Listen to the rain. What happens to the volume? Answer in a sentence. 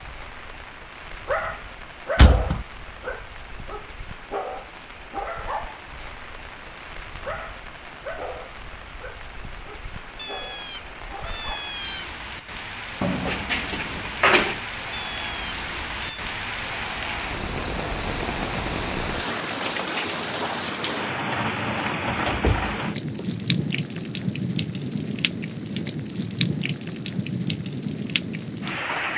The loudness of the rain goes up.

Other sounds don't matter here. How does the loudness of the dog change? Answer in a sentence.
The volume of the dog goes down.